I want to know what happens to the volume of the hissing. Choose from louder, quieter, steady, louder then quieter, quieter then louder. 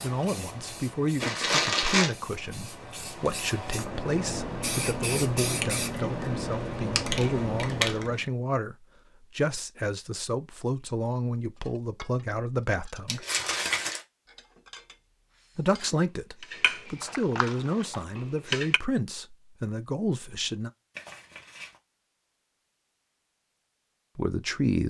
louder.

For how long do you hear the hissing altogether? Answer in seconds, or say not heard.
8 s.